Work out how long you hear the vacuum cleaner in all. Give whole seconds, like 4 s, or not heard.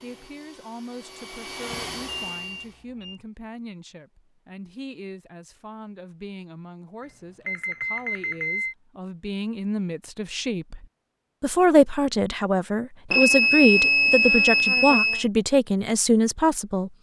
3 s.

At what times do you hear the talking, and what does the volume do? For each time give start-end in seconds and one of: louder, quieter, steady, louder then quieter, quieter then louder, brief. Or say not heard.
0.0-16.9 louder.